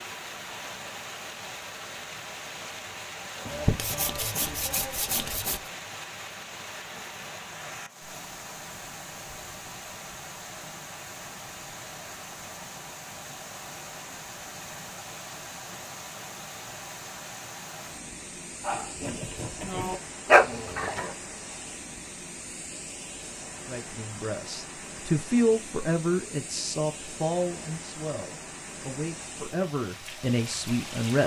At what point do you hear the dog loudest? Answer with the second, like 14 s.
20 s.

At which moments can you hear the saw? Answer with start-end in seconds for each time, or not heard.
3.5-5.7.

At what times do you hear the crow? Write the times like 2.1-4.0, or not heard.
not heard.